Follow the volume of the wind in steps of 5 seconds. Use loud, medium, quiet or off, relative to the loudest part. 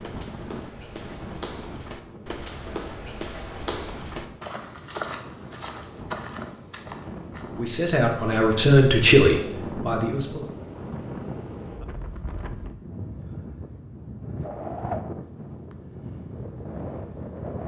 medium, loud, loud, loud.